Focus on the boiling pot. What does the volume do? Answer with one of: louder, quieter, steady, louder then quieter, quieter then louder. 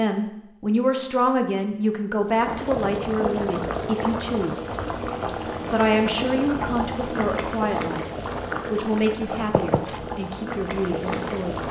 steady.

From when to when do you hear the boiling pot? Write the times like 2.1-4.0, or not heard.
2.2-11.6.